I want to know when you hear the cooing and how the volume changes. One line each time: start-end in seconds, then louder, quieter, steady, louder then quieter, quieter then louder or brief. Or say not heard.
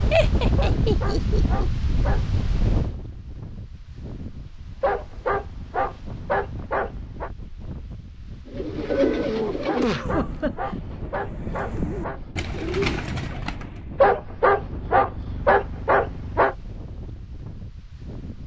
8.4-14.1 quieter then louder.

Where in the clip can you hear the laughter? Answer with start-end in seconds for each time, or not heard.
0.1-1.7, 9.8-10.8.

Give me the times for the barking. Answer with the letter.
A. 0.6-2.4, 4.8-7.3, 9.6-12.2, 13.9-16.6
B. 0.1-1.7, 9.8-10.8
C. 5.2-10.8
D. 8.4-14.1
A.